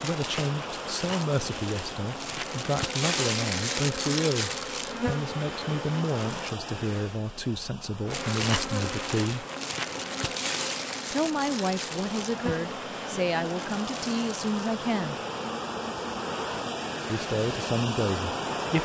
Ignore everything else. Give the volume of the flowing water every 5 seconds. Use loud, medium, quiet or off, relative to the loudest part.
medium, medium, medium, loud.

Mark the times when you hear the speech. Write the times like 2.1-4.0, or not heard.
0.0-9.4, 11.1-15.2, 17.1-18.7.